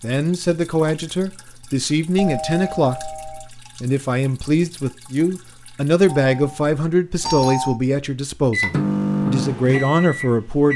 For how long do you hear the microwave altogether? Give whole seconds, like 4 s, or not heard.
2 s.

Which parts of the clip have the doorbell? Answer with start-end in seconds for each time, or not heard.
2.1-3.5, 6.0-7.8.